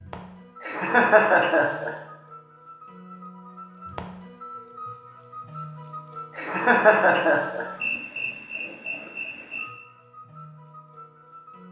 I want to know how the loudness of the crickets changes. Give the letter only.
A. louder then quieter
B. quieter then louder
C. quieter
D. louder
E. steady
A.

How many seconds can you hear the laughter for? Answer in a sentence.
You can hear the laughter for 3 seconds altogether.